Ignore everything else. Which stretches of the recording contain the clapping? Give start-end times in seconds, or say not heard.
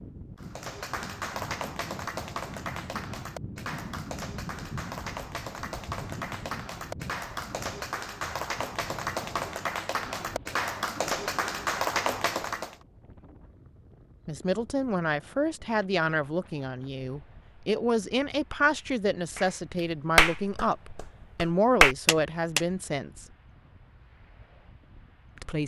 0.3-12.8, 19.4-22.6.